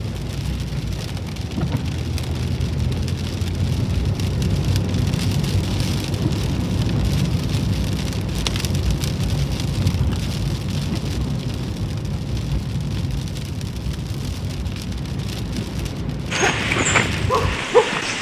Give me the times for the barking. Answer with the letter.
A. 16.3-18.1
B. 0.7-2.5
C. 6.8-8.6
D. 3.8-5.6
A.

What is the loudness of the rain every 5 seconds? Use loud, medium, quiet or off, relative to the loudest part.
loud, loud, loud, medium.